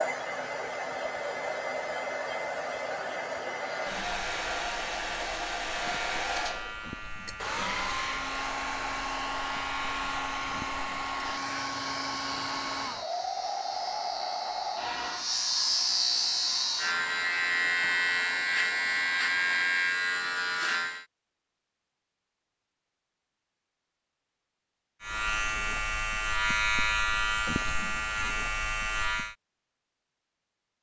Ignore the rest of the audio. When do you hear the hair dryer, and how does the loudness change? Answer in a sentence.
The hair dryer can be heard from 0.0 to 19.9 s, getting quieter.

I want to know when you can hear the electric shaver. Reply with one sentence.
The electric shaver can be heard from 3.5 to 21.1 s and from 25.0 to 29.4 s.